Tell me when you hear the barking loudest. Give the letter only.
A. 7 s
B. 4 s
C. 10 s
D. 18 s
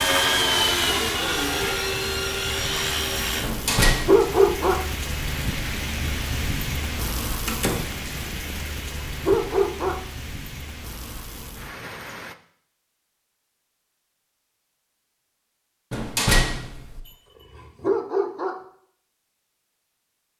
B.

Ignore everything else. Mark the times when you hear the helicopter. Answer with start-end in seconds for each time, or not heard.
0.0-3.5.